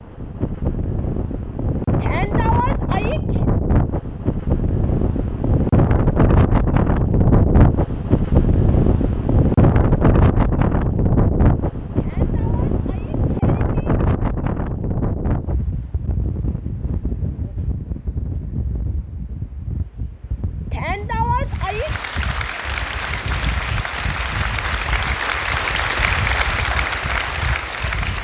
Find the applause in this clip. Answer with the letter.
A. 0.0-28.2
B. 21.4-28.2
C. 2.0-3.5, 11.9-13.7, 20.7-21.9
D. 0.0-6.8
B.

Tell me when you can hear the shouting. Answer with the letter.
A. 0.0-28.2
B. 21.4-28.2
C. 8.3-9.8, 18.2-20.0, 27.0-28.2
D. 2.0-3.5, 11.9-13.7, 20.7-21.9
D.